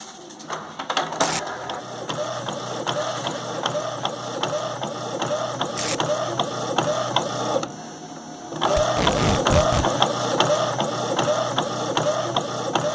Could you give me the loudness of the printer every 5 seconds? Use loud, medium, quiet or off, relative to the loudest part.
medium, loud, loud.